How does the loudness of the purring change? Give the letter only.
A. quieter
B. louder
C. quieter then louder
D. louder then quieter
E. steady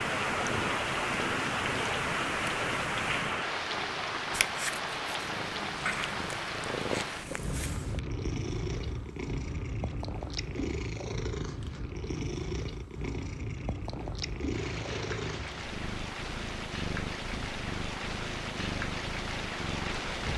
E.